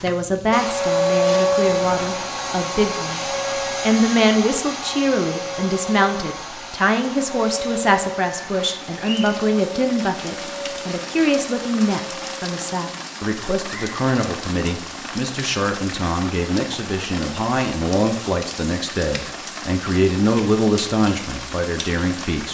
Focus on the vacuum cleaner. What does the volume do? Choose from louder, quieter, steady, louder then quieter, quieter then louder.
quieter.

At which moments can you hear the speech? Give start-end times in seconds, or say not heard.
0.0-22.4.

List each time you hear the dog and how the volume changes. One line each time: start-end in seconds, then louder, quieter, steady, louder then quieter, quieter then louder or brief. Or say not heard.
not heard.